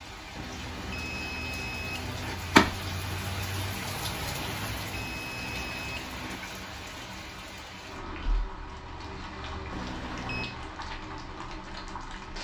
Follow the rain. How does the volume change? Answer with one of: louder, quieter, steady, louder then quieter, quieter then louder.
quieter.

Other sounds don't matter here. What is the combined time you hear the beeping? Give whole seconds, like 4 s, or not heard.
5 s.